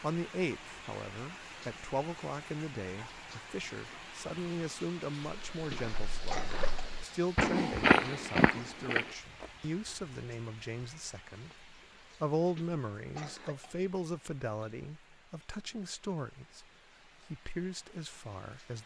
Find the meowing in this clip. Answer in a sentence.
You can't hear the meowing here.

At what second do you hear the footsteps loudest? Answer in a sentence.
The volume of the footsteps peaks at 8 seconds.